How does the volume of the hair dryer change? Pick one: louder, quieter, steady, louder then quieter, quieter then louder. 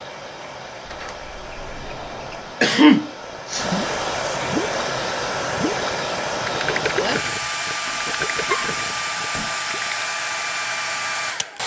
louder.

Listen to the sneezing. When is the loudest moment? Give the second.
3 s.